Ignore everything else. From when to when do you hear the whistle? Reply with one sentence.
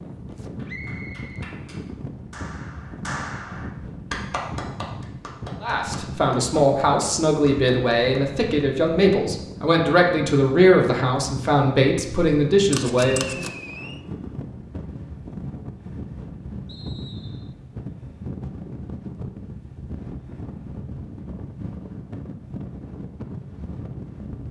You can hear the whistle from 0.7 to 1.4 s, from 13.1 to 14.1 s and from 16.6 to 17.6 s.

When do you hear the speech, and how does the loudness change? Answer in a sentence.
You can hear the speech from 5.6 to 13.4 s, at a steady volume.